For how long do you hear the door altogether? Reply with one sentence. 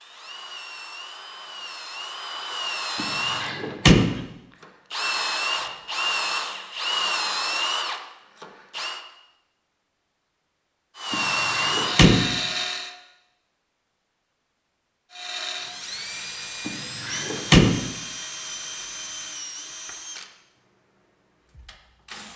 You can hear the door for 4 seconds altogether.